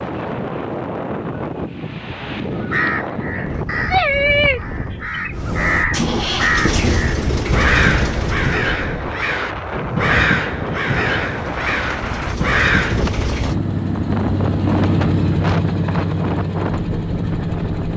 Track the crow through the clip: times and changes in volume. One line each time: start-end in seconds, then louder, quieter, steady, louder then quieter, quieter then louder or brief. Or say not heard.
2.5-13.1 steady.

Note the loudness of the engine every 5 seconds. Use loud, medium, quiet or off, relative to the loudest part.
off, loud, loud, loud.